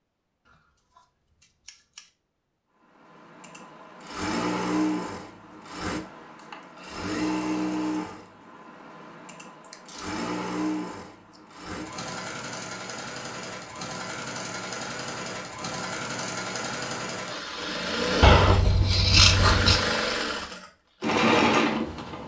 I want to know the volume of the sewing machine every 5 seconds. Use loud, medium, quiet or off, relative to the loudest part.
medium, medium, medium, medium, loud.